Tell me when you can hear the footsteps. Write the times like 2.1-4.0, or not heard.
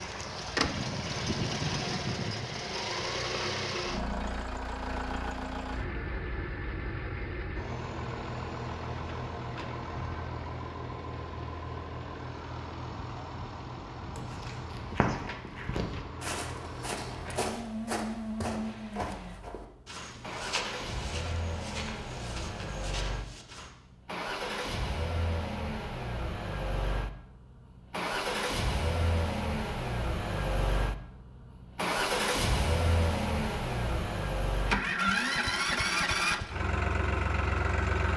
14.2-23.7.